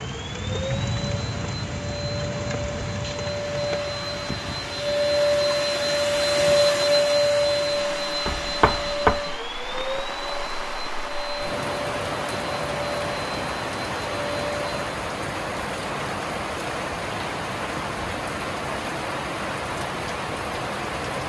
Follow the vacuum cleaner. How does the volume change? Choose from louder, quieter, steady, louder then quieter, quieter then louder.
louder then quieter.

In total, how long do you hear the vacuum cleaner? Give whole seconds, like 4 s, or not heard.
15 s.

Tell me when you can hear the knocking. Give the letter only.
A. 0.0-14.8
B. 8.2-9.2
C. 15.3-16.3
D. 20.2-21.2
B.